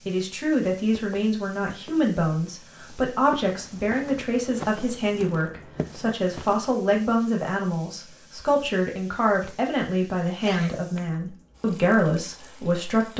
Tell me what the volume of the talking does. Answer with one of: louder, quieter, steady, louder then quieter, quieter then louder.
steady.